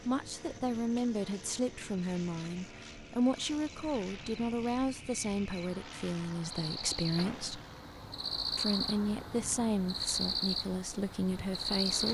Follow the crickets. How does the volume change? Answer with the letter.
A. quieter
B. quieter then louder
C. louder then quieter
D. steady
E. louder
E.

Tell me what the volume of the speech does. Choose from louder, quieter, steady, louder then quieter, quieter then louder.
steady.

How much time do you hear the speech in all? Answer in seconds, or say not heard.
11 s.